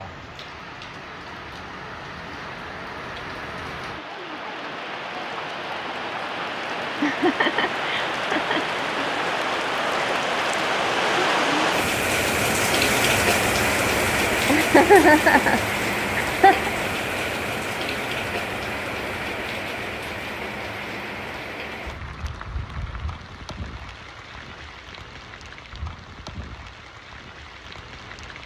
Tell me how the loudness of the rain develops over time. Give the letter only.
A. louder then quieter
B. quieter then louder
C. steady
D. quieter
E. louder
A.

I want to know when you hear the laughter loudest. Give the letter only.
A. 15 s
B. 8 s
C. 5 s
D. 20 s
A.